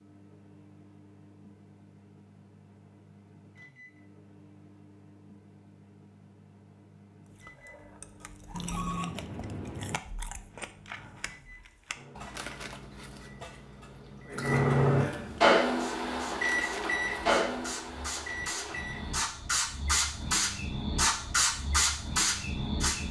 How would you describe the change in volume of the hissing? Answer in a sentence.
The volume of the hissing goes up.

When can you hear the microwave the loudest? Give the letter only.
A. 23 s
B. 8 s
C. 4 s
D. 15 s
D.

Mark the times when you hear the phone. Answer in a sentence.
You can hear the phone from 8.5 to 10.0 s.